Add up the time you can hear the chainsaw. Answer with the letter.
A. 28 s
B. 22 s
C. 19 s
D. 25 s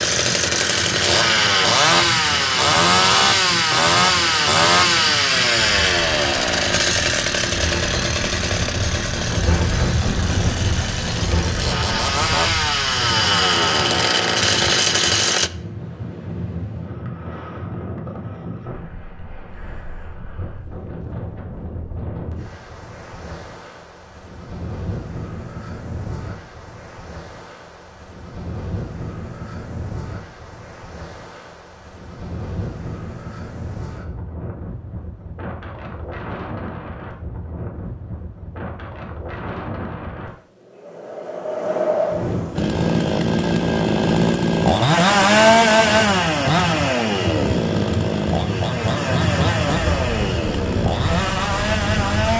D.